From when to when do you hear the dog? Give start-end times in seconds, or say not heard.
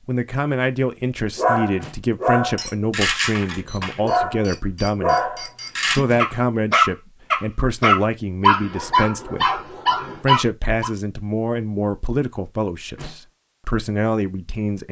1.4-10.9.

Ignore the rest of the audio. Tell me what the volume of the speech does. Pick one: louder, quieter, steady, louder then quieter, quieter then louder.
steady.